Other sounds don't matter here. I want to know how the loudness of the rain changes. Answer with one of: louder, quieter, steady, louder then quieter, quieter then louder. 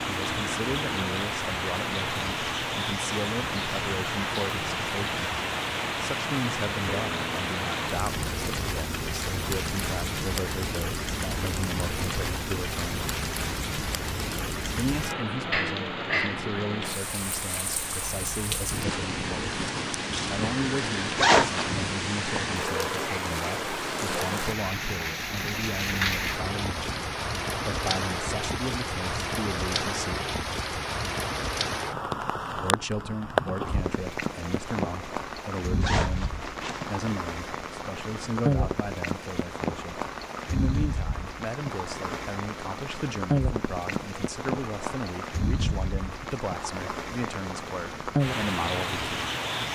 steady.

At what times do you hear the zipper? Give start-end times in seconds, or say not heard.
21.1-21.8, 35.8-37.0.